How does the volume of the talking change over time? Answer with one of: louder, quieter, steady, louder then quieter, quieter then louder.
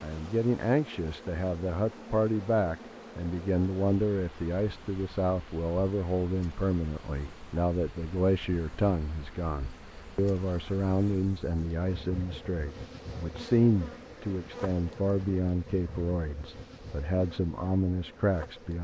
steady.